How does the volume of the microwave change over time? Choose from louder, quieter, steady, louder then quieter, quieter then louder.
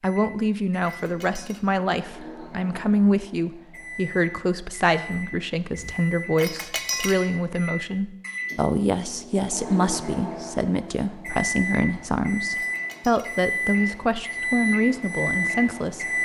louder.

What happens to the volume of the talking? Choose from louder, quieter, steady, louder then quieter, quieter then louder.
steady.